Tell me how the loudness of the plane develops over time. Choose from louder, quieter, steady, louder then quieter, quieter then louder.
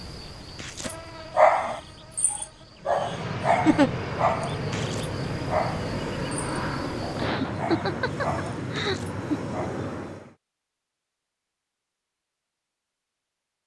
steady.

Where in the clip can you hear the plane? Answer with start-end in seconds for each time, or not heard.
2.8-10.3.